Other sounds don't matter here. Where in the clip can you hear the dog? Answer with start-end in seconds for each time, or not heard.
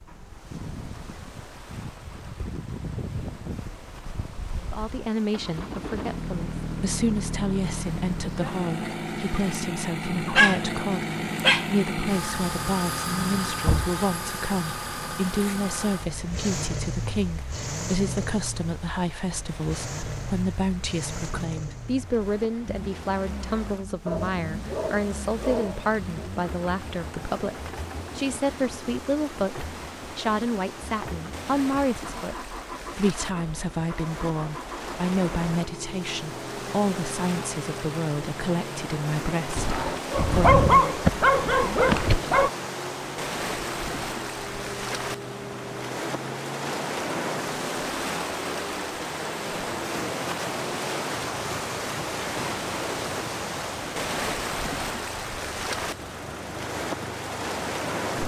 10.3-11.7, 24.1-26.3, 39.5-42.5.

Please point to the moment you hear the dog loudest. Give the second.
41 s.